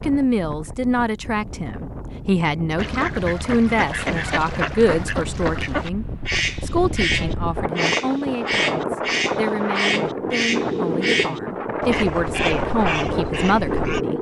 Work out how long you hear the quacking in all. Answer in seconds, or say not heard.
11 s.